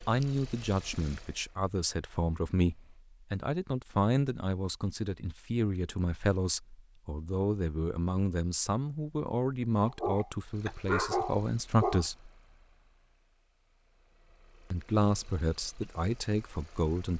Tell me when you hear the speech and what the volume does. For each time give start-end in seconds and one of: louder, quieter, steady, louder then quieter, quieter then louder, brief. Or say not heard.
0.1-12.2 steady
14.7-17.1 brief.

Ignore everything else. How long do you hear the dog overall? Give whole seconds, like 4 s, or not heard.
2 s.